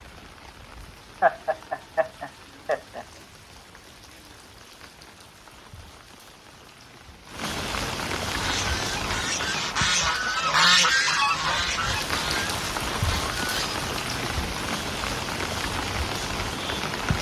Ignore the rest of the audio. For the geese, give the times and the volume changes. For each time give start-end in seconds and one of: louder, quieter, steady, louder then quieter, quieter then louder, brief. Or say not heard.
8.2-13.8 louder then quieter.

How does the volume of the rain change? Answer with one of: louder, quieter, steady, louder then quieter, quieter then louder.
louder.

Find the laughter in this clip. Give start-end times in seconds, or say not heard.
1.2-3.0.